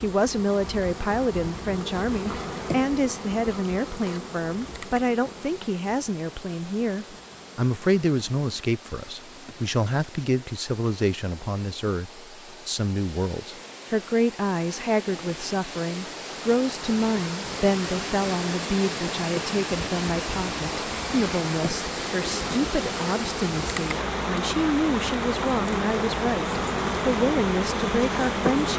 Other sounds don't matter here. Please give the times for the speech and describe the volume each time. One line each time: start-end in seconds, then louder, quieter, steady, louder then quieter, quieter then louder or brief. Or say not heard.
0.0-28.7 steady.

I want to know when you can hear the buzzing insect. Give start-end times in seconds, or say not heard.
0.0-8.5, 17.0-28.7.